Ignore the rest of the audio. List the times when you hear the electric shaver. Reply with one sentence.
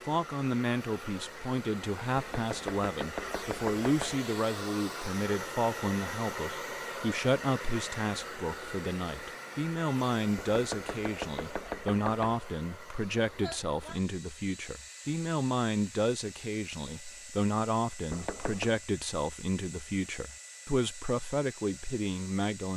The electric shaver can't be heard in this clip.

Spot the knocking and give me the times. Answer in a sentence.
You can hear the knocking from 2.1 to 4.2 s, from 10.3 to 12.4 s and from 18.1 to 18.8 s.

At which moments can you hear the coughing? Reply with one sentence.
You can't hear the coughing here.